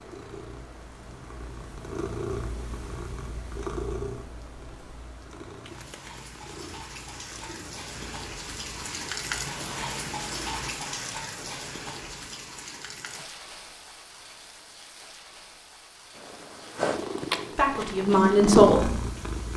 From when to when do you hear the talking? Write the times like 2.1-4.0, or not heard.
17.6-18.9.